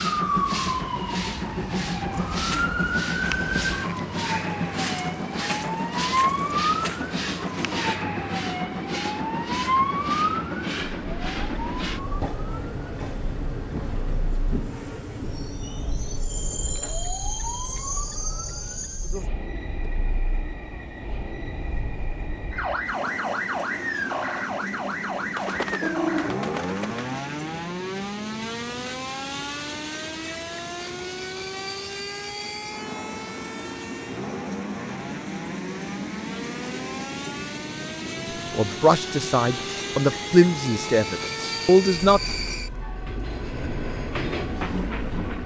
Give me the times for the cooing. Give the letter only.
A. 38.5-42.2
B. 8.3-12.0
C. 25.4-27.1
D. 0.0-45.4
C.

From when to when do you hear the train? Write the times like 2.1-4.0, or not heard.
0.0-45.4.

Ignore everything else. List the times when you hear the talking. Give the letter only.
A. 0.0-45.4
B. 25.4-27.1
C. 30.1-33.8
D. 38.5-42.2
D.